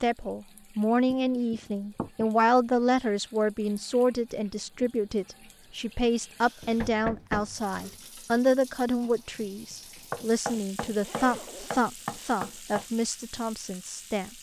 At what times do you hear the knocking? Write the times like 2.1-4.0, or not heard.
1.1-2.2, 6.6-8.0, 10.1-12.8.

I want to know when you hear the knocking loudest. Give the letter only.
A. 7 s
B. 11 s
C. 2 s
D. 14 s
A.